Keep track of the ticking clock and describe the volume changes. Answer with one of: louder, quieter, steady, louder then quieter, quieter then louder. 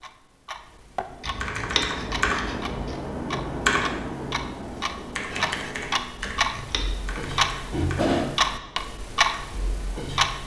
louder.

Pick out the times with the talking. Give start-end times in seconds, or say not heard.
not heard.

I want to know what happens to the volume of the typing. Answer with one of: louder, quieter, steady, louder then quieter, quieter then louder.
quieter.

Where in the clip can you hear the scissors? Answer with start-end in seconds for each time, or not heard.
1.2-3.0, 6.3-7.0.